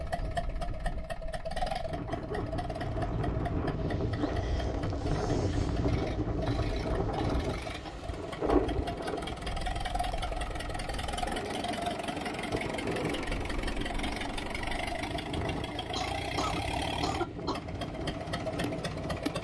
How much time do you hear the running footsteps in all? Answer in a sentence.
You can't hear the running footsteps here.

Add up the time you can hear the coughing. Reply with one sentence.
The coughing can be heard for 3 seconds in total.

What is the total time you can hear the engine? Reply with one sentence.
The engine can be heard for 19 seconds in total.